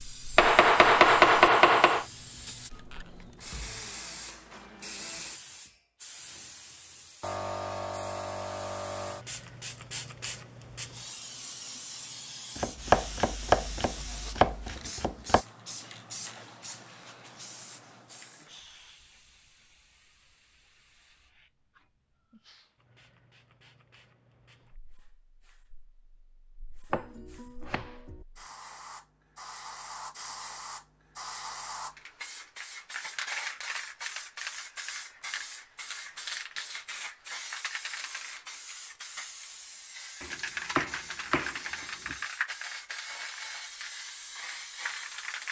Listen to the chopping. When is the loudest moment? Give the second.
1 s.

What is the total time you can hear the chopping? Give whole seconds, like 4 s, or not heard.
8 s.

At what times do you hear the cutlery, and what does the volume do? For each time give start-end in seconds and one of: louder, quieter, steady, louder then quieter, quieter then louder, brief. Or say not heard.
not heard.